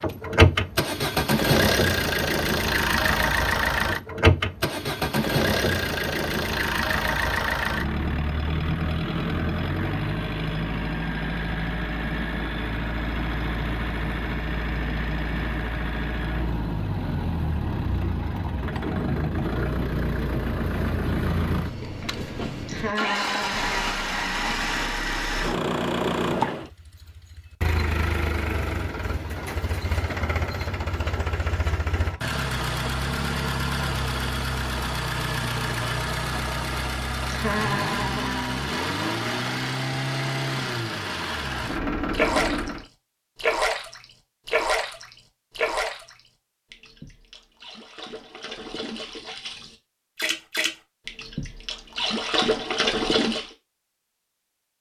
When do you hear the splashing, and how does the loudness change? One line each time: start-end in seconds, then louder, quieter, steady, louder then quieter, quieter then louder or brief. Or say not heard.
41.5-42.8 brief
43.4-53.5 quieter then louder.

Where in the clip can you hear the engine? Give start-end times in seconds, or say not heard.
0.0-42.9.